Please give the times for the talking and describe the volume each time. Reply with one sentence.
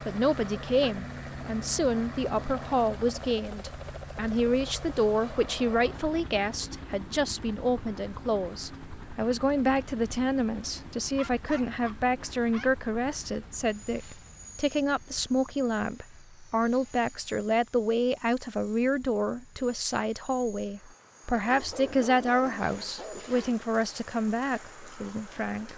The talking can be heard from 0.1 to 25.7 s, at a steady volume.